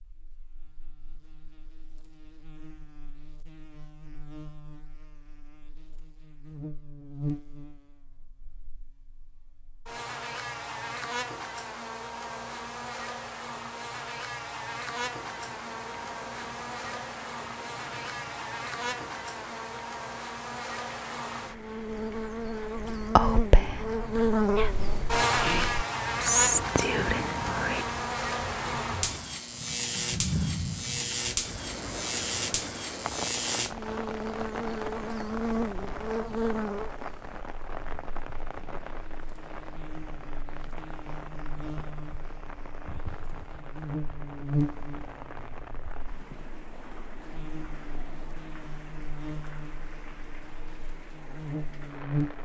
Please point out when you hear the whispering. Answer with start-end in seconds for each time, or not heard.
22.8-27.9.